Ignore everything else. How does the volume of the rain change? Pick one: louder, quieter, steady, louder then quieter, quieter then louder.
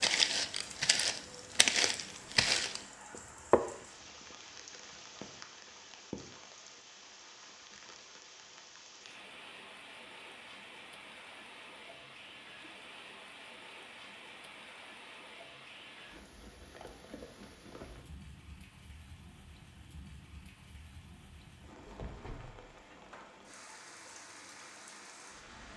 steady.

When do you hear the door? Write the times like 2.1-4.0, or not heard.
21.9-23.4.